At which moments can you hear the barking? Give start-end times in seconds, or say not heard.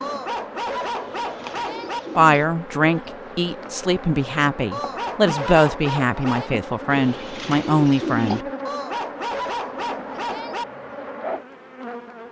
0.0-2.0, 4.7-6.5, 8.7-10.7.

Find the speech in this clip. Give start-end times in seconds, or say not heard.
2.1-8.4.